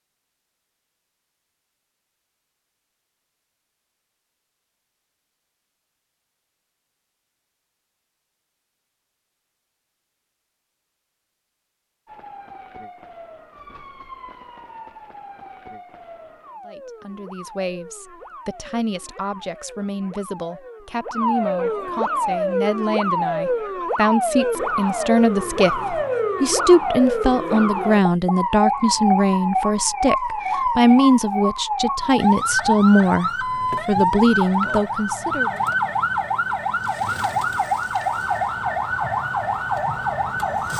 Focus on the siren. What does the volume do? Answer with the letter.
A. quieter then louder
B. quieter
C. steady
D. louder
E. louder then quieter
D.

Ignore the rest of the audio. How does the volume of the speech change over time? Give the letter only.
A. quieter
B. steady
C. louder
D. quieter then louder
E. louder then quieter
C.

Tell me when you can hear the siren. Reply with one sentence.
The siren can be heard from 12.1 to 40.7 s.